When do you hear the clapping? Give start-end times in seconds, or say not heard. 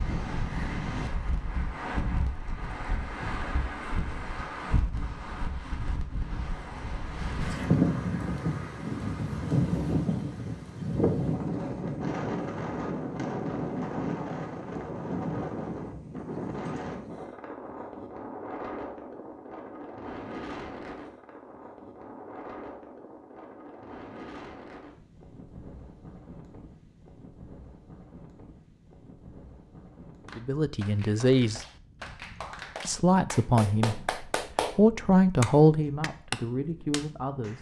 30.2-37.5.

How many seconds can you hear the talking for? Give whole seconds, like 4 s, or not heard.
6 s.